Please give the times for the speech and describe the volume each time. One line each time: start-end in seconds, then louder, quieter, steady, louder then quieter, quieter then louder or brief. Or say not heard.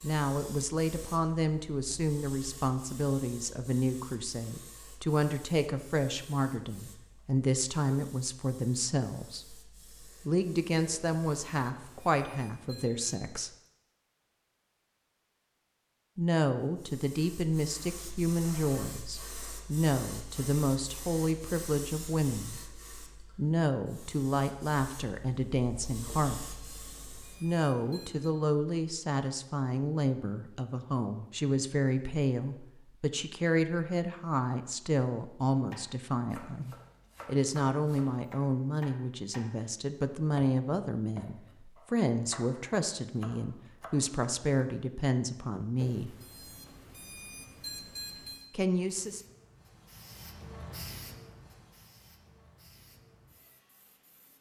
0.0-13.5 steady
16.1-46.1 steady
48.5-49.2 brief.